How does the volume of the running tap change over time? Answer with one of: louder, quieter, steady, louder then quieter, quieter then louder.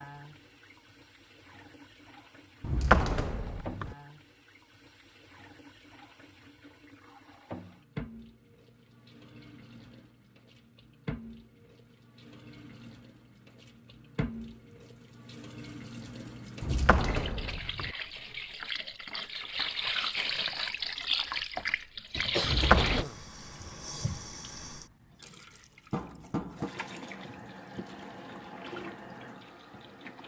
louder then quieter.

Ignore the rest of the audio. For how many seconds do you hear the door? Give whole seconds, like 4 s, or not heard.
3 s.